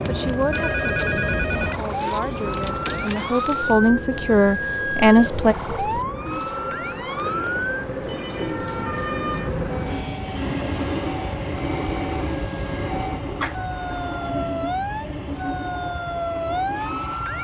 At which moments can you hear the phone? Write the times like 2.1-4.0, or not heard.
0.5-1.8, 7.0-8.6, 13.4-13.9.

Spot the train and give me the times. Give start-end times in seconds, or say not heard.
0.0-17.4.